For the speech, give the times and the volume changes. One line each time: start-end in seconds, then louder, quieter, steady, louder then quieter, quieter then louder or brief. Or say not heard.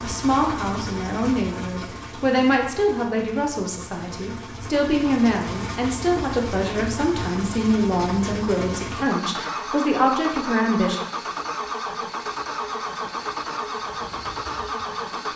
0.0-11.0 steady.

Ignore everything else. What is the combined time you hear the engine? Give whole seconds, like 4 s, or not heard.
15 s.